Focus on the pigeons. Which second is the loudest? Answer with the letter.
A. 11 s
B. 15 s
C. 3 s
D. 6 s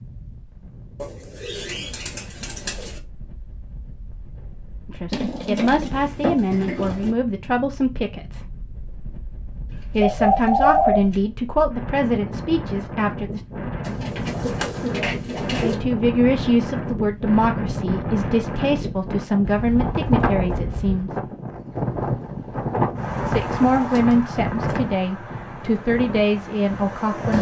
A.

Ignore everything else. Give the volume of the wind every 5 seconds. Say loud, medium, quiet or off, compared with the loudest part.
quiet, quiet, medium, loud, loud, medium.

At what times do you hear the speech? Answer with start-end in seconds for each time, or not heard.
4.8-8.4, 9.9-13.4, 15.6-21.1, 23.2-27.3.